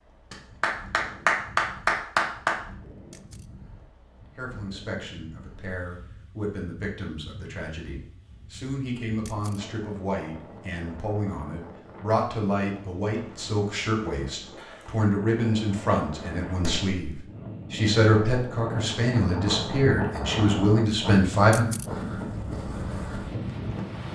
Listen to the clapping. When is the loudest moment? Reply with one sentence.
The volume of the clapping peaks at 1 second.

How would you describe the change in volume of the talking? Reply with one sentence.
The loudness of the talking goes up.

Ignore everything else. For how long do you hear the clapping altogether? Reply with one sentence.
You can hear the clapping for 3 seconds altogether.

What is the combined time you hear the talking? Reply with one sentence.
You can hear the talking for 17 seconds altogether.